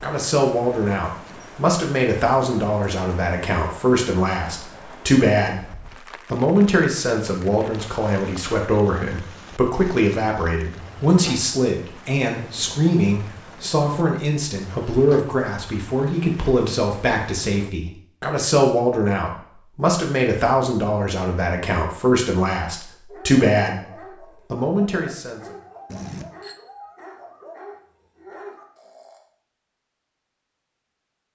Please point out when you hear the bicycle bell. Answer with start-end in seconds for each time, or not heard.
25.9-26.6.